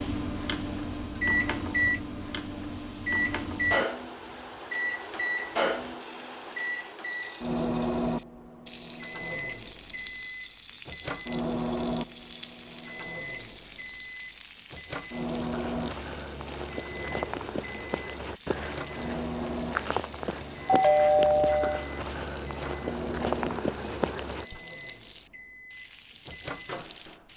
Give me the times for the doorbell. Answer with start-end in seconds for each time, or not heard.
20.6-21.9.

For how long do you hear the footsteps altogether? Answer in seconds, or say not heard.
9 s.